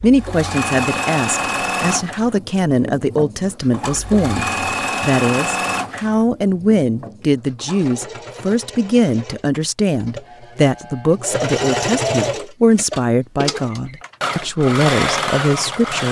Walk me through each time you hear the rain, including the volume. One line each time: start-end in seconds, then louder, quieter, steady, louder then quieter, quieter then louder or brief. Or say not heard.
not heard.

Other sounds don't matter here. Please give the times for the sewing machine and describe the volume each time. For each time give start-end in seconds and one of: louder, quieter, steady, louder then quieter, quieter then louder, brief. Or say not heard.
0.0-16.0 quieter then louder.